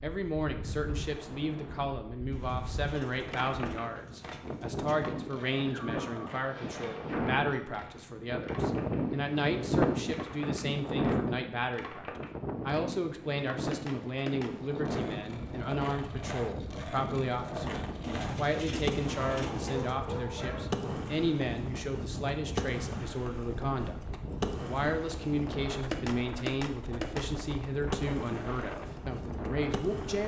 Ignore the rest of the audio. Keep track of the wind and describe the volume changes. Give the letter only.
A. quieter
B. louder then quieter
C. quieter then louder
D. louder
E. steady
B.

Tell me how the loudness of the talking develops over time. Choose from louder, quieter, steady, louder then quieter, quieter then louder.
steady.